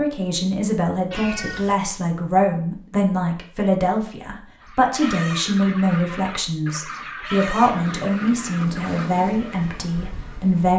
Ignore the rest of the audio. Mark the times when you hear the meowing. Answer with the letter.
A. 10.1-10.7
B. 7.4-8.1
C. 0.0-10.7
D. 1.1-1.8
D.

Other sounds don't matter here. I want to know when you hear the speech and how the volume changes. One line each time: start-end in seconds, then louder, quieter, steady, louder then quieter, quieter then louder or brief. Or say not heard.
0.0-10.7 steady.